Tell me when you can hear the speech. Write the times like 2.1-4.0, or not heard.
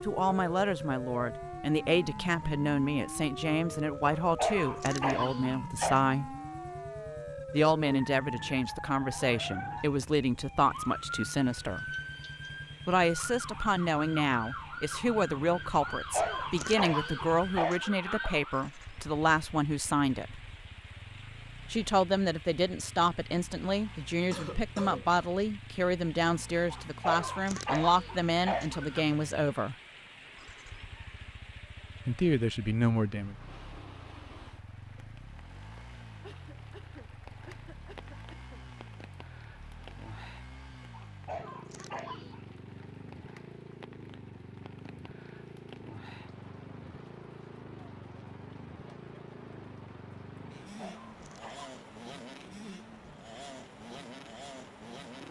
0.0-6.3, 7.5-11.8, 12.8-20.4, 21.7-29.8, 32.0-33.4.